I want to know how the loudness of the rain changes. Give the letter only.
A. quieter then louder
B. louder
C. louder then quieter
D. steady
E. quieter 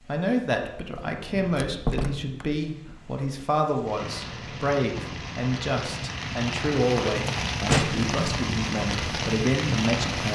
B.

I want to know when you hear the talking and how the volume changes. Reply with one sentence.
You can hear the talking from 0.1 to 10.3 s, at a steady volume.